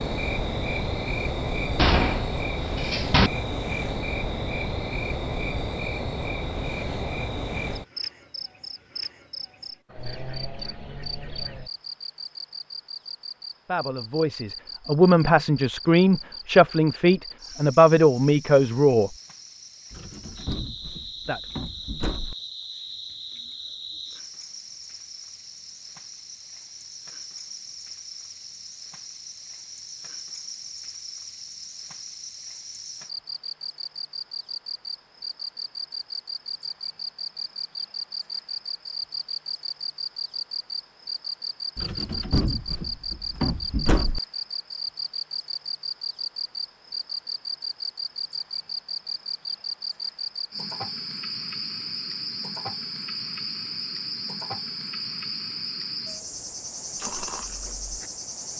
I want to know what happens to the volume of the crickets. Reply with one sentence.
The volume of the crickets goes down, then up.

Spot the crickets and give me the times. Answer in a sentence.
You can hear the crickets from 0.0 to 58.5 s.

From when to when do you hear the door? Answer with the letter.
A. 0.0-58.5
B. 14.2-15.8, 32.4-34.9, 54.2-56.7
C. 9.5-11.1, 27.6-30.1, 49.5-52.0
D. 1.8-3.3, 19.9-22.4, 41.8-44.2
D.